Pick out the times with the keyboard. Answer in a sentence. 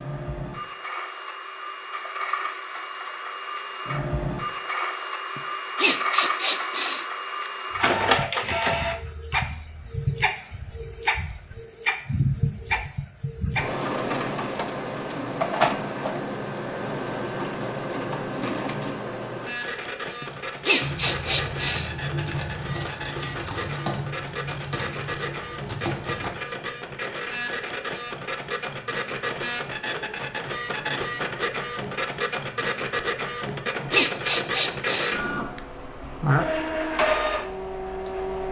The keyboard can be heard from 19.5 to 26.3 s.